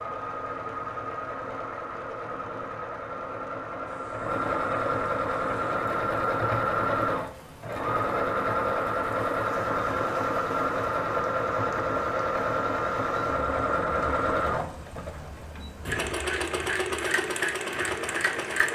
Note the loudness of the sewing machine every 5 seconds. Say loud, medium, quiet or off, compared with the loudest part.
medium, loud, loud, loud.